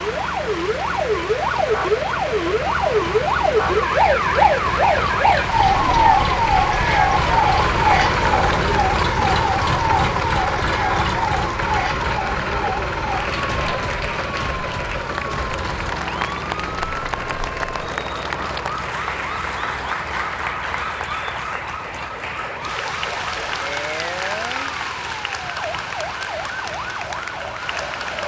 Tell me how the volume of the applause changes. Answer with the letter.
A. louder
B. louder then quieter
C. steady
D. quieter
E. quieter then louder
C.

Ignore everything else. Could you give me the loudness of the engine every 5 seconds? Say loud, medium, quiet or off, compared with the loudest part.
medium, loud, loud, medium, quiet, quiet.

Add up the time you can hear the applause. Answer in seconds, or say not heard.
28 s.